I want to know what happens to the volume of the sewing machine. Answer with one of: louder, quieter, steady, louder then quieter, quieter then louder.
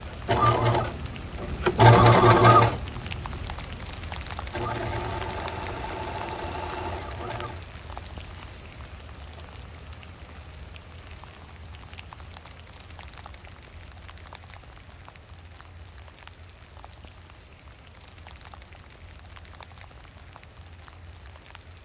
quieter.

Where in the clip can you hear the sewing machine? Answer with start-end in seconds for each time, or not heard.
0.0-9.4.